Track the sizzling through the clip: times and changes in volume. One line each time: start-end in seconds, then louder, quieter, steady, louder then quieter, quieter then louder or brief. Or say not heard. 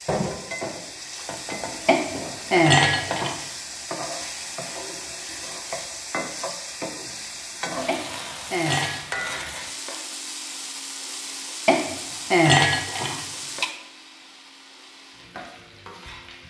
0.0-16.4 quieter.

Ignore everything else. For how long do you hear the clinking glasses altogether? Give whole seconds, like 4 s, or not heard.
5 s.